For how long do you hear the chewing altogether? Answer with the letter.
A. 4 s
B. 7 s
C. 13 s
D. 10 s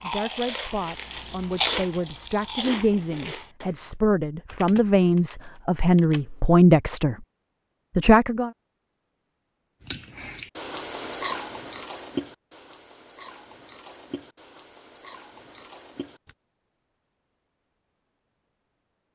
D.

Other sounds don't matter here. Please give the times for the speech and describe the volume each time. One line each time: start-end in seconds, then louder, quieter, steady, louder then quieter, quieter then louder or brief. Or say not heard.
0.0-7.2 louder
8.0-8.5 brief.